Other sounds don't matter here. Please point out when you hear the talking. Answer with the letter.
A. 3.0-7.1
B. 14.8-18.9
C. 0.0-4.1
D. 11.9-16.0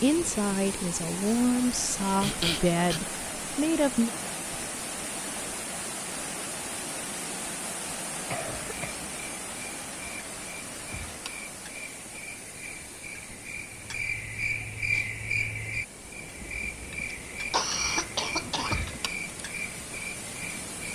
C.